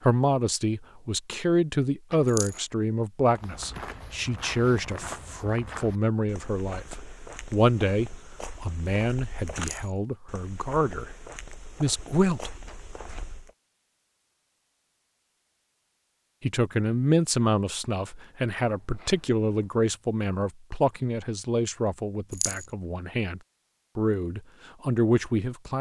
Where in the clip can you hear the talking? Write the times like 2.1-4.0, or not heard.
0.0-11.1, 11.8-12.6, 16.4-25.7.